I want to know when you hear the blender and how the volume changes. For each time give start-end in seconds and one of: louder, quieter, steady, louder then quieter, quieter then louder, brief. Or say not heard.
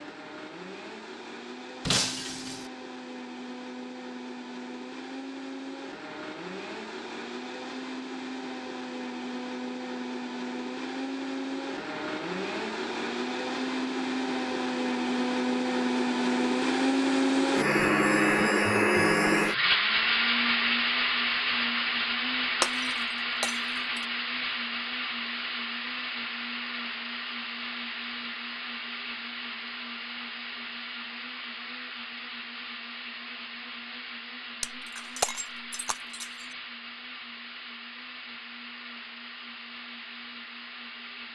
0.0-41.3 louder then quieter.